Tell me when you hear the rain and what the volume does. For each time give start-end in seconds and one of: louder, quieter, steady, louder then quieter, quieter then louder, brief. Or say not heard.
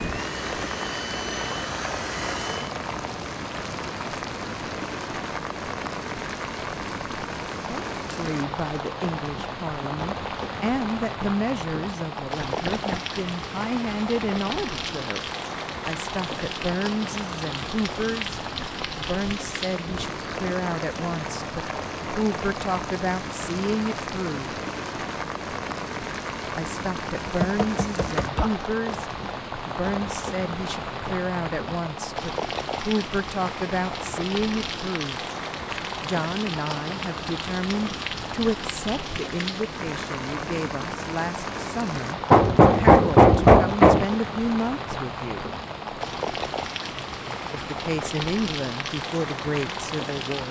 0.0-50.4 steady.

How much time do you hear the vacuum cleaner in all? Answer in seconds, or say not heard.
3 s.